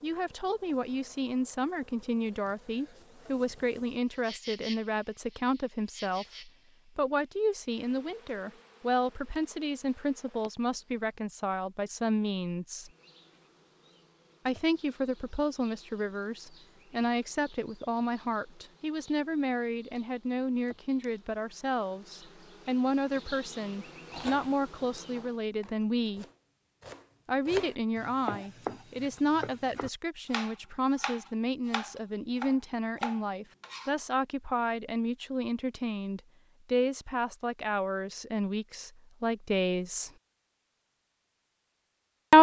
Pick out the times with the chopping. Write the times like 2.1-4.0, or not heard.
24.1-34.0.